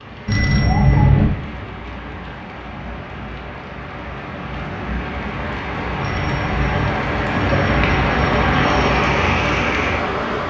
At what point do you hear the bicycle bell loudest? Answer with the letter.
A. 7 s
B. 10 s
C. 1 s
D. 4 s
C.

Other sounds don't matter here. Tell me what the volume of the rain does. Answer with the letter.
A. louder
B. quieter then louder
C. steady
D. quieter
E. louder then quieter
A.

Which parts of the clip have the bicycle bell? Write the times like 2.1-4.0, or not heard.
0.2-1.3, 6.0-6.9.